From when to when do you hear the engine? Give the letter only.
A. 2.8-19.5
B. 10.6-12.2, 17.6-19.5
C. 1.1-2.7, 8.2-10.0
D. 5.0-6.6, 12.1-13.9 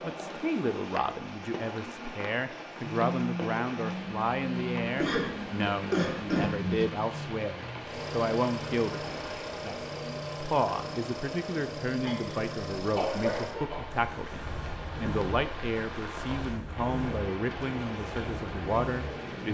A.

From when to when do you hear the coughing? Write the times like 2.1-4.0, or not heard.
5.0-6.6, 12.1-13.9.